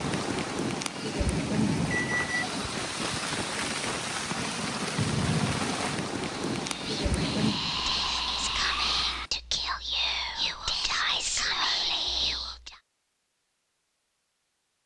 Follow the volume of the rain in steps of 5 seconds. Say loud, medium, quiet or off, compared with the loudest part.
loud, loud, off.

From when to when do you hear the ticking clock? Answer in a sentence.
You can't hear the ticking clock here.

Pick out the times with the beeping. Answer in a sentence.
You can hear the beeping from 1.9 to 2.5 s.